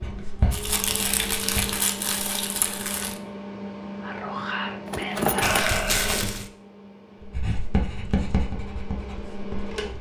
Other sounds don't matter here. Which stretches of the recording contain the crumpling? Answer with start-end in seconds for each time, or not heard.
0.5-3.1, 5.4-6.5.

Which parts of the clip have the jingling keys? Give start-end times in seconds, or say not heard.
4.8-5.8.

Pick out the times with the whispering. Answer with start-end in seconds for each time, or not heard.
4.0-5.7.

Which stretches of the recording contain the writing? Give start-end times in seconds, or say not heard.
0.0-1.8, 7.2-9.9.